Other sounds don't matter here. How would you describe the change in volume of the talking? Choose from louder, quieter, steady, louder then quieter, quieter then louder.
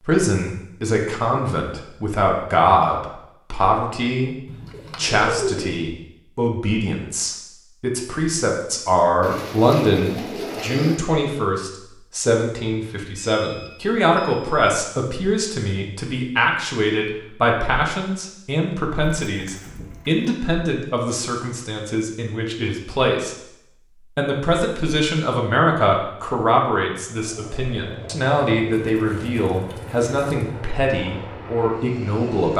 steady.